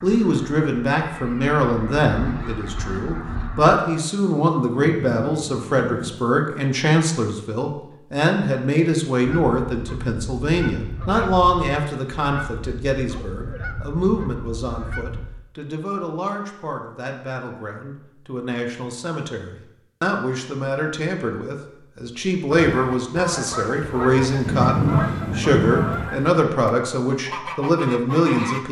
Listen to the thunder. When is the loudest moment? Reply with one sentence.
The loudest moment of the thunder is at 25 seconds.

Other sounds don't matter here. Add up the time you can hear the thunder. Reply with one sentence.
You can hear the thunder for 3 seconds altogether.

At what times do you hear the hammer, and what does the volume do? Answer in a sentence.
The hammer can't be heard in this clip.